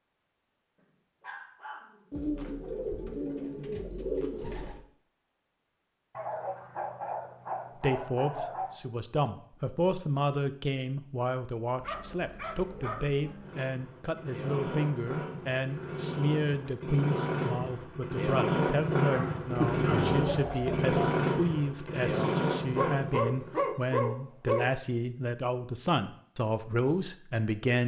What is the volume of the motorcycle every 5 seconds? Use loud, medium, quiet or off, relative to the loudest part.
off, off, medium, loud, loud, off.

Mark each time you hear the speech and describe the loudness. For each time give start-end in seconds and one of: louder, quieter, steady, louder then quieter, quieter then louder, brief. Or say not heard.
7.8-27.8 steady.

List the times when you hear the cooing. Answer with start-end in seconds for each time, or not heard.
2.1-4.8, 19.6-20.9.